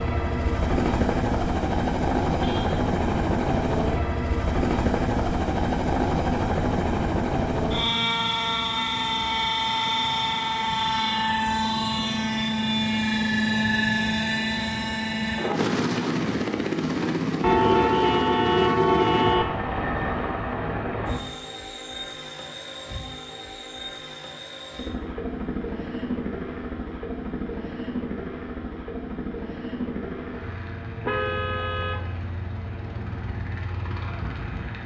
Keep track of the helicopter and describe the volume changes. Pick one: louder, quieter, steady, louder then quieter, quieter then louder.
quieter.